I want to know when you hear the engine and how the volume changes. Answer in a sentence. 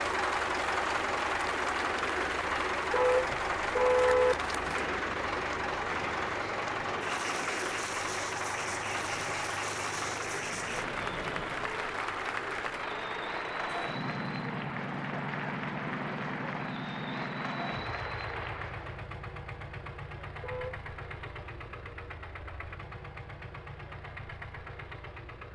You can hear the engine from 0.0 to 25.5 s, getting quieter.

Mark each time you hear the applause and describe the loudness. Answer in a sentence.
You can hear the applause from 0.0 to 19.1 s, at a steady volume.